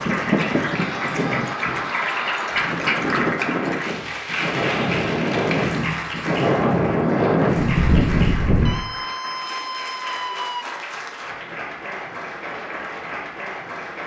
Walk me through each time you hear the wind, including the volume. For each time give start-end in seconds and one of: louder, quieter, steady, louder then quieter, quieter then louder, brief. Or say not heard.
0.0-8.8 louder.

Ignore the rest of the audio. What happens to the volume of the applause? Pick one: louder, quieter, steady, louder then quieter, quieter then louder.
quieter.